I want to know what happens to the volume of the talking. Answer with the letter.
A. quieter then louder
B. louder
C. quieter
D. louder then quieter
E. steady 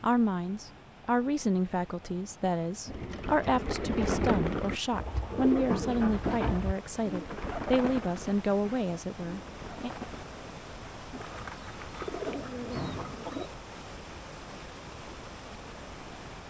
E.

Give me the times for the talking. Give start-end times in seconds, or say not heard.
0.0-9.9.